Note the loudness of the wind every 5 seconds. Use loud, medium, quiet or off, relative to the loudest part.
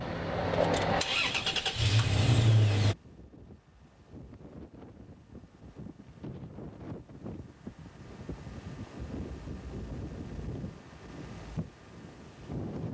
medium, loud, loud.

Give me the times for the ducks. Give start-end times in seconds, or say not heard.
not heard.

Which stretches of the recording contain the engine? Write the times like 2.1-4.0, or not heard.
0.0-3.0.